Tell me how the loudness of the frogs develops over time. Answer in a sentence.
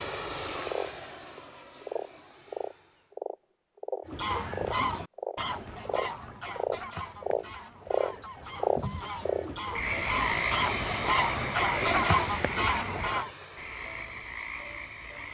The volume of the frogs goes up, then down.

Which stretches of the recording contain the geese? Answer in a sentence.
The geese can be heard from 4.0 to 13.3 s.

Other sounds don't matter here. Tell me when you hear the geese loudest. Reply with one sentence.
The loudest moment of the geese is at 12 seconds.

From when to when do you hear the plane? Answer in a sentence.
The plane can be heard from 0.0 to 3.1 s and from 9.8 to 15.2 s.